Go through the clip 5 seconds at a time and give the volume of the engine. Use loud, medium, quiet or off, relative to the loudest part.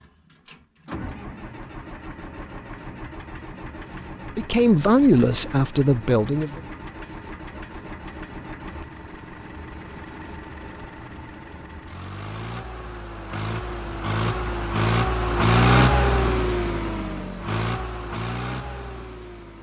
quiet, quiet, medium, loud.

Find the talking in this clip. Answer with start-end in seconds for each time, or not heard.
4.2-6.6.